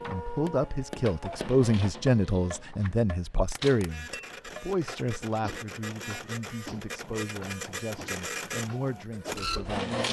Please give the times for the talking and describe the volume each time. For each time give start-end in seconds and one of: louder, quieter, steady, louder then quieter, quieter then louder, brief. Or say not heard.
0.1-10.0 quieter.